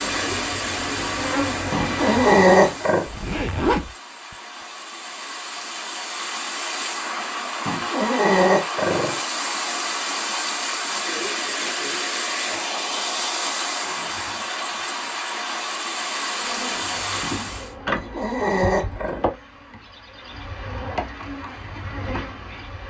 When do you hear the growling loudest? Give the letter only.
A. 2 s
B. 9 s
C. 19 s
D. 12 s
A.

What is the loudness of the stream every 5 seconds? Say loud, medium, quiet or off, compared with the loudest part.
medium, loud, loud, loud, off.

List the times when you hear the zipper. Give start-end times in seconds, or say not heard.
3.0-4.3.